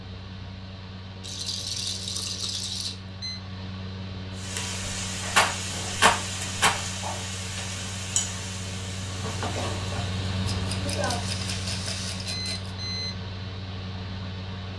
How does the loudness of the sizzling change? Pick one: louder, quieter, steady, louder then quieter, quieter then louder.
steady.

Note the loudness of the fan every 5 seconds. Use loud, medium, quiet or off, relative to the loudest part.
medium, loud, loud.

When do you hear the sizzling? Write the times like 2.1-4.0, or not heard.
4.3-12.3.